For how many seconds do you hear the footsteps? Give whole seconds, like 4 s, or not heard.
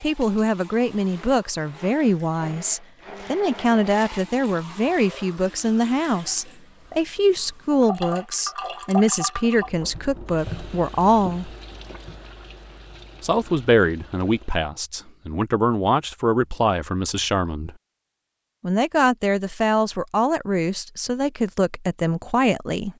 not heard.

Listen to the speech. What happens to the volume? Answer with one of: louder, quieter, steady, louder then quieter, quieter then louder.
steady.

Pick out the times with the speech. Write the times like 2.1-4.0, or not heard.
0.0-11.5, 13.2-17.8, 18.6-22.9.